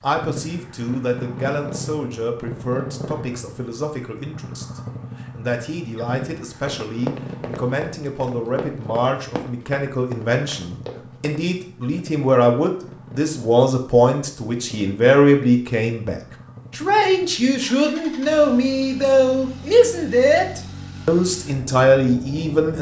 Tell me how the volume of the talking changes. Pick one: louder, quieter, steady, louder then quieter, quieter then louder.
louder.